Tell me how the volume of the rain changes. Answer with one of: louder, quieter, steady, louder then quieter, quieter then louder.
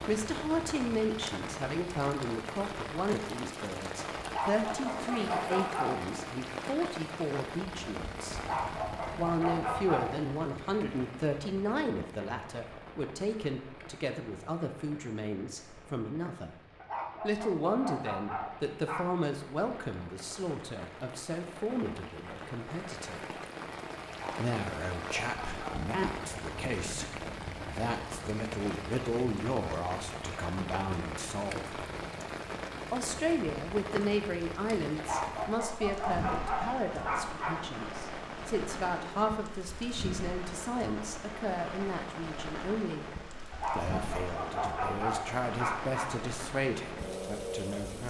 quieter then louder.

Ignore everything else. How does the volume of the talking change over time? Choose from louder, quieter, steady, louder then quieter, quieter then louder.
steady.